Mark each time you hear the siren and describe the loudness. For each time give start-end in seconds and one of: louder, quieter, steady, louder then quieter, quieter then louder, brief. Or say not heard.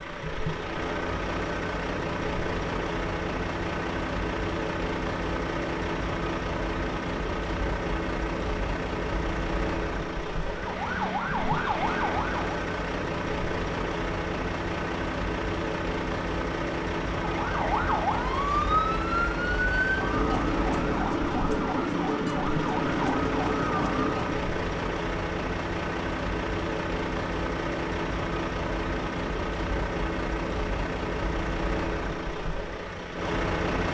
10.4-12.5 brief
17.2-24.5 steady.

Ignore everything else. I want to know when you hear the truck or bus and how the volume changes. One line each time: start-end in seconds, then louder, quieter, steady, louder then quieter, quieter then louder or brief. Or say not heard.
0.0-33.8 steady.